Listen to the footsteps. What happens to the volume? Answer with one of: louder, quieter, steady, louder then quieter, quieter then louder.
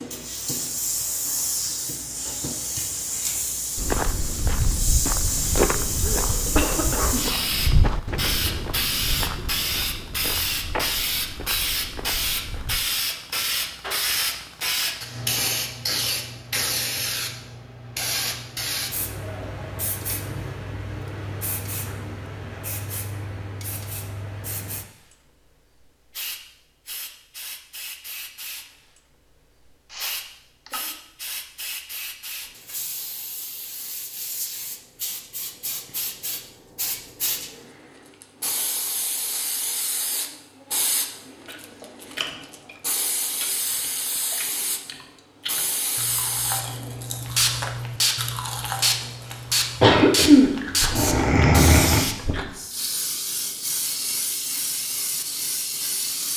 quieter.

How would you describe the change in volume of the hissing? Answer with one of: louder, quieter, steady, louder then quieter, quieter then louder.
quieter then louder.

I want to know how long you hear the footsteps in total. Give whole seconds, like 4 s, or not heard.
9 s.